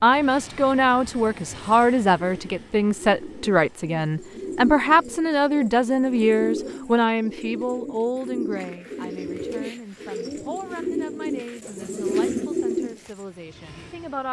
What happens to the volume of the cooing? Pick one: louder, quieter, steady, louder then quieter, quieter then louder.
louder.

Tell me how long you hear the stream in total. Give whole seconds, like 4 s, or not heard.
not heard.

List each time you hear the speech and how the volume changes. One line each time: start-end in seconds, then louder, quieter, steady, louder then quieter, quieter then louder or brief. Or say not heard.
0.0-14.2 quieter.